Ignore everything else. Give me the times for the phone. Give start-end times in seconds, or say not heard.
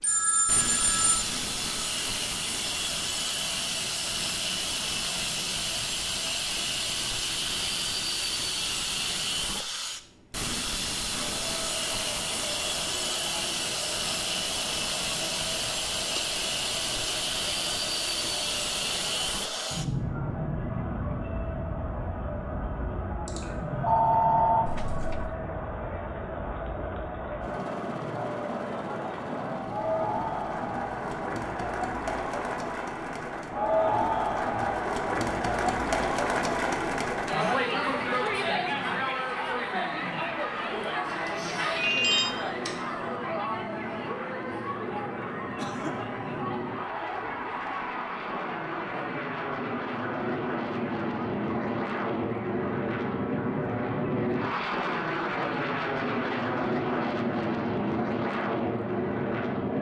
0.0-1.2, 23.2-24.6, 41.0-42.7.